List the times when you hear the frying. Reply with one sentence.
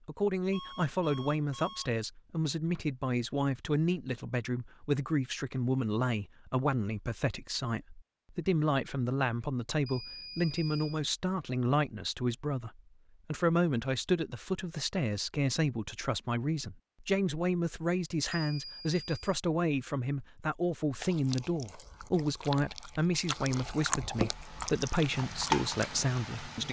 The frying can be heard from 24.1 to 26.6 s.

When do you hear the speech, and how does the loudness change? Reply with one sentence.
You can hear the speech from 0.1 to 26.6 s, at a steady volume.